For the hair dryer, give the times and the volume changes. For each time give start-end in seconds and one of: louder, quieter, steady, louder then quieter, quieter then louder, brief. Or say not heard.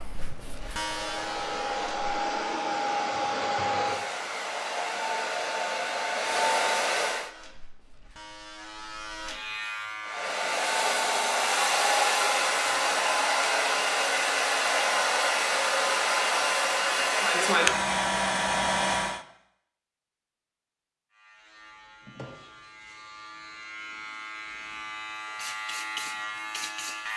0.0-7.3 louder
10.0-19.2 steady.